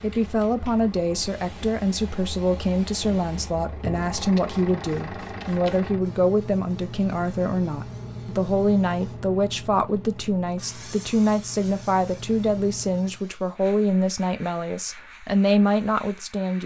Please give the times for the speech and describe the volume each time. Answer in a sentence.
You can hear the speech from 0.0 to 16.6 s, at a steady volume.